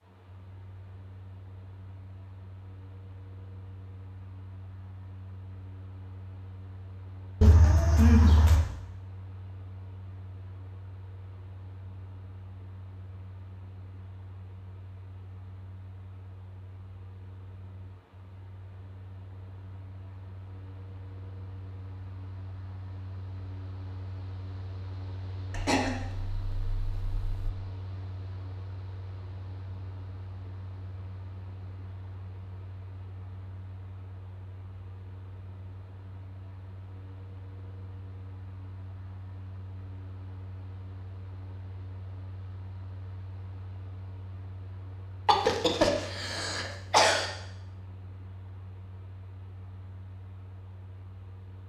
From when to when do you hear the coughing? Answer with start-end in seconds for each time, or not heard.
7.4-8.7, 25.5-27.5, 45.2-47.2.